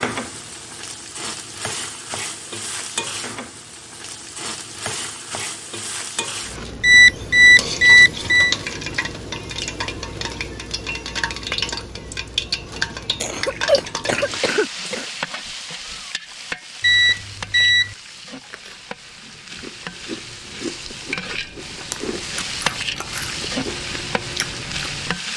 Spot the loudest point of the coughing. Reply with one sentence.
The volume of the coughing peaks at 14 seconds.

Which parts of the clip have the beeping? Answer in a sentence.
You can hear the beeping from 6.8 to 8.6 s and from 16.8 to 17.9 s.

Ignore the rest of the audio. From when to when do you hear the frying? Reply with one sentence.
The frying can be heard from 0.0 to 25.3 s.